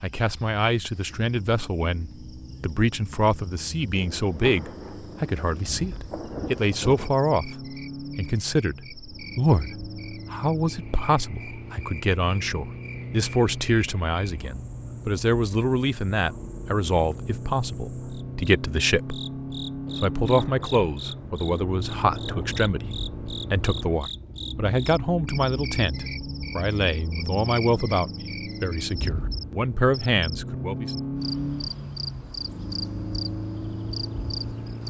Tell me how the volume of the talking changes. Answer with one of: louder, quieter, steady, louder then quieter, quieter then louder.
steady.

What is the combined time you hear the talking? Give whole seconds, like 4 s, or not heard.
30 s.